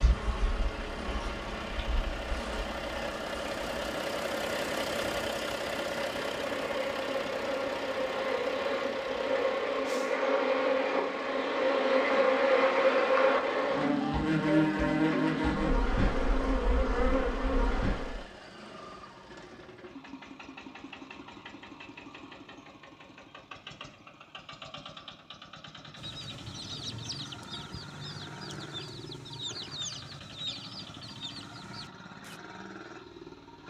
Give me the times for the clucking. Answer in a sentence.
The clucking can be heard from 25.9 to 32.4 s.